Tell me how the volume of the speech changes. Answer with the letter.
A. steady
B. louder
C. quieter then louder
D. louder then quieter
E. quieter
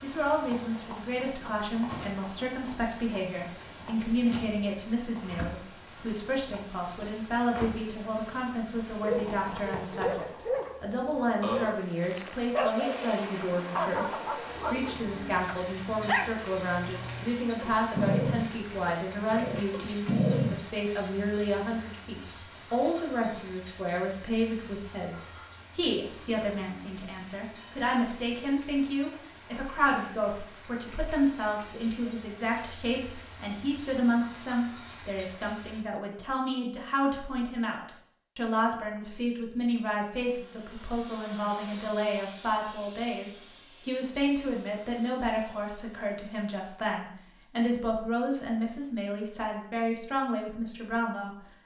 A.